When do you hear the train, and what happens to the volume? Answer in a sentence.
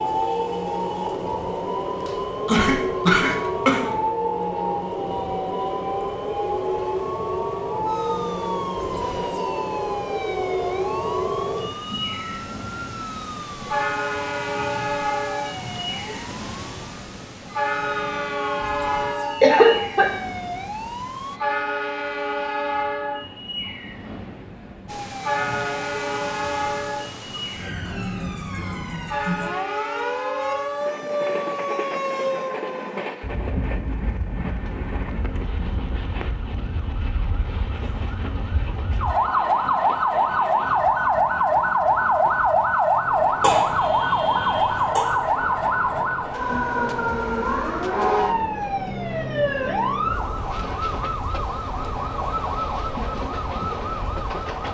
The train can be heard from 0.0 to 54.6 s, getting quieter.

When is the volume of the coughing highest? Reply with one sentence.
The volume of the coughing peaks at 20 seconds.